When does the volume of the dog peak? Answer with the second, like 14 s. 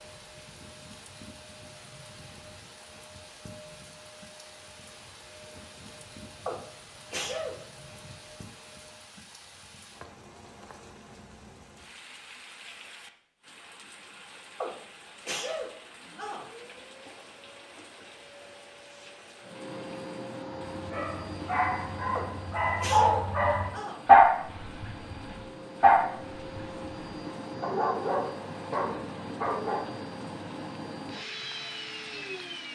24 s.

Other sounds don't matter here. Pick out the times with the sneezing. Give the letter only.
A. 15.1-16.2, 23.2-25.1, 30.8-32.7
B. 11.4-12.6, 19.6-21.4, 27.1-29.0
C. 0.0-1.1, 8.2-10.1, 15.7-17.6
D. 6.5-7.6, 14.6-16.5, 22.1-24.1
D.